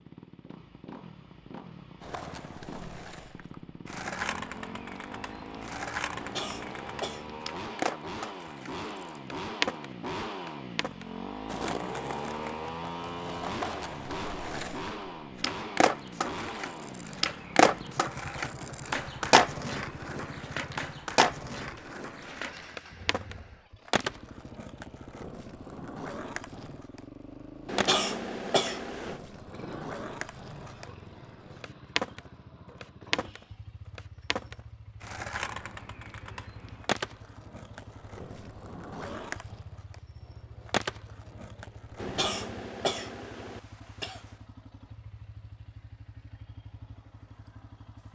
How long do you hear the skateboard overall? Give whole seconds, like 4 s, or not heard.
40 s.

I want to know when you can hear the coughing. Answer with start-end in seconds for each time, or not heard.
6.2-7.3, 27.6-29.2, 42.0-44.2.